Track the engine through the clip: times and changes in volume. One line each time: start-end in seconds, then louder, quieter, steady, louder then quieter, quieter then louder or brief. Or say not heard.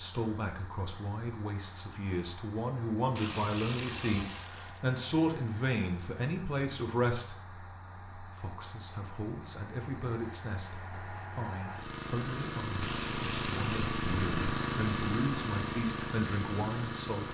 0.0-17.3 louder.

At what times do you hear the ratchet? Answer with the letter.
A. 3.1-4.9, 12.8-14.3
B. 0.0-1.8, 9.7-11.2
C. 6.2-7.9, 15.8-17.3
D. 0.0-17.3
A.